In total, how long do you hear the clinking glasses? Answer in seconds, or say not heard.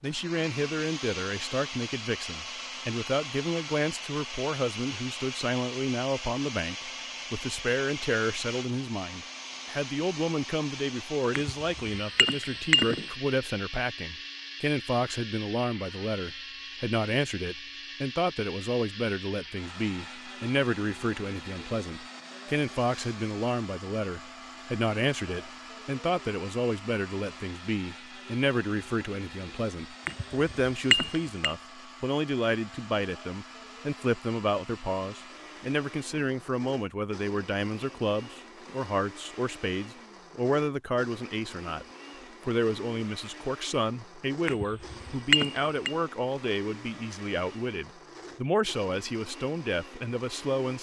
5 s.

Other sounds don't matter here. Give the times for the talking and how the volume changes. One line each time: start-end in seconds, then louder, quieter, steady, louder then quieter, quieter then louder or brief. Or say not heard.
0.0-41.9 steady
42.5-50.7 steady.